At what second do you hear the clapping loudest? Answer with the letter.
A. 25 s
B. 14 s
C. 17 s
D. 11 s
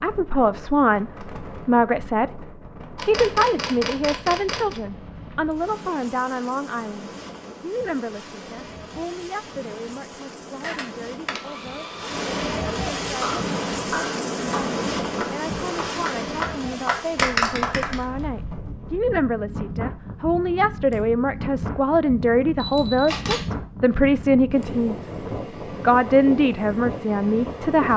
C.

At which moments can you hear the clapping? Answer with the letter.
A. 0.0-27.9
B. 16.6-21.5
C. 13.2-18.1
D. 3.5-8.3
C.